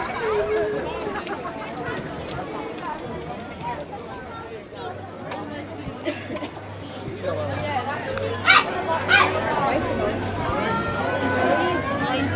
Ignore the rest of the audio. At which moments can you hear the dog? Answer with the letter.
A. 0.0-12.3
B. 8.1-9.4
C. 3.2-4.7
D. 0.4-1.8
B.